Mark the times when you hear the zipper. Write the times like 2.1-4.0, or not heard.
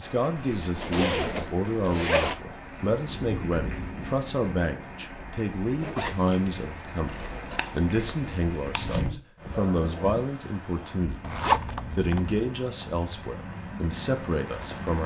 0.6-2.4, 5.8-6.9, 11.2-12.5.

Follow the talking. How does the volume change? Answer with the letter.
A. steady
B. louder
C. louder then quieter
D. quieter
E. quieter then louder
A.